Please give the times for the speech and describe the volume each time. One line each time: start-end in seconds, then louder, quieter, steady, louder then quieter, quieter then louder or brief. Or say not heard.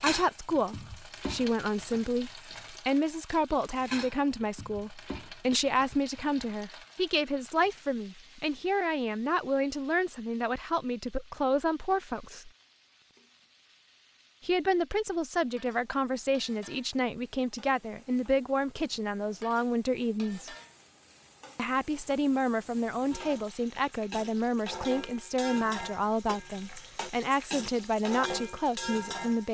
0.0-12.5 steady
14.4-20.6 steady
21.6-29.4 steady.